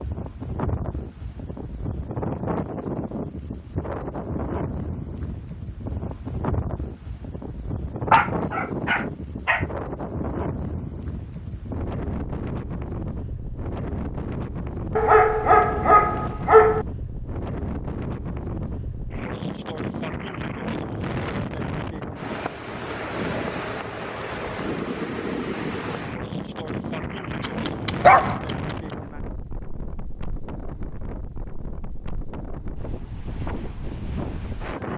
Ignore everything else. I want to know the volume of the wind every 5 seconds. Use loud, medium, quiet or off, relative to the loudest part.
loud, loud, loud, loud, loud, loud, medium.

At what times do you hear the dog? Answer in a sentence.
The dog can be heard from 8.1 to 9.7 s, from 14.9 to 16.9 s and from 27.4 to 28.6 s.